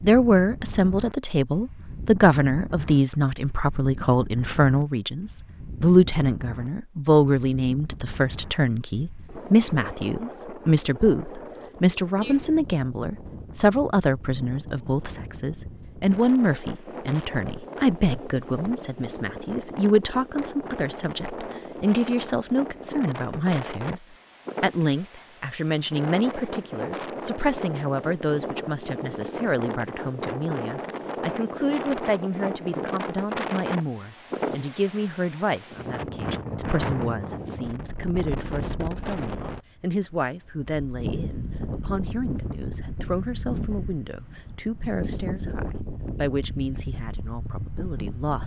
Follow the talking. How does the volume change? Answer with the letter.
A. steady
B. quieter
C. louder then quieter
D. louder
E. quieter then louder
B.